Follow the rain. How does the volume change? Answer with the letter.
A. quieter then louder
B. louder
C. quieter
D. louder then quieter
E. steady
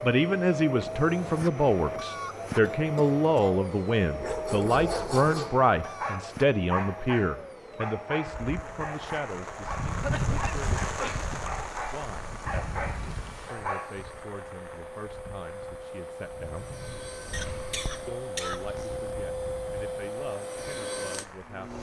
C.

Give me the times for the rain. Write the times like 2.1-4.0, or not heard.
8.2-21.7.